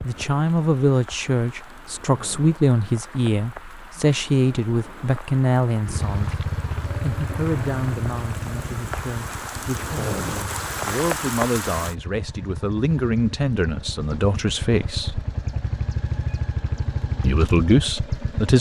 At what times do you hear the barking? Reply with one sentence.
The barking can't be heard in this clip.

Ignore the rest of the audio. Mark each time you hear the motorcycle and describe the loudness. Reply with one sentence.
You can hear the motorcycle from 5.8 to 18.5 s, getting quieter then louder.